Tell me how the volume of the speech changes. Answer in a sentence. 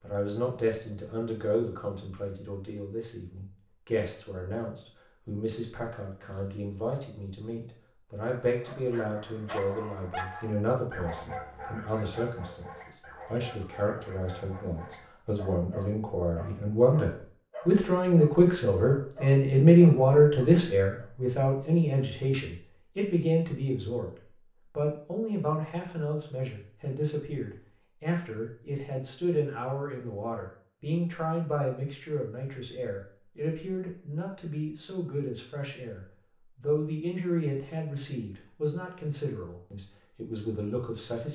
The volume of the speech goes up, then down.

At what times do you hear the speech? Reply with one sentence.
The speech can be heard from 0.0 to 24.1 s and from 24.7 to 41.2 s.